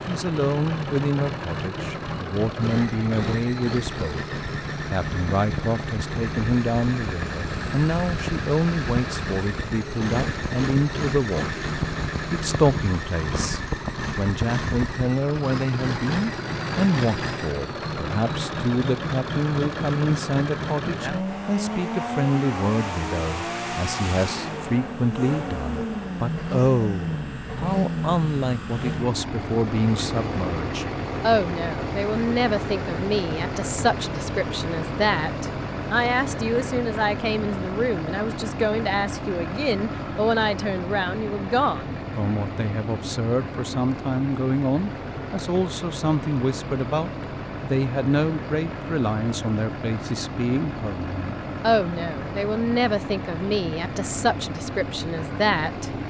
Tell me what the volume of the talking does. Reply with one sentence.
The loudness of the talking stays about the same.